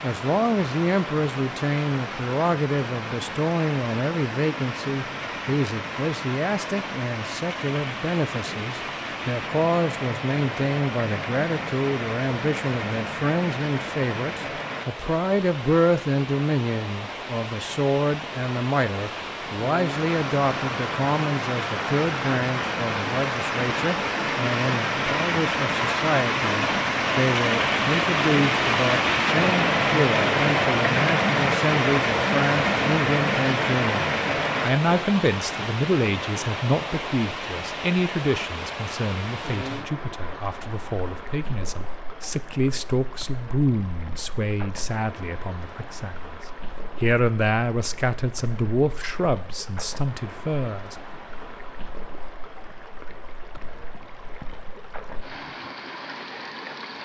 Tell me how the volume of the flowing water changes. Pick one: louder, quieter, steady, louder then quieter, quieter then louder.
louder then quieter.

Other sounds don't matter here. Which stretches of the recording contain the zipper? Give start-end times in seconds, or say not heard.
not heard.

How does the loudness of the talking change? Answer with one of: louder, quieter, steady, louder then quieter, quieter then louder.
steady.